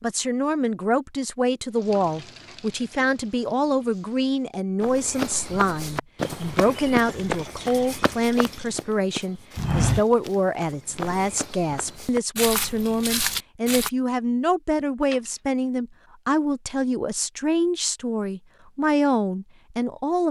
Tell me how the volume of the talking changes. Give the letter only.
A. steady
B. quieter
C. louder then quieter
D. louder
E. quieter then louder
A.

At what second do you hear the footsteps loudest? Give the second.
10 s.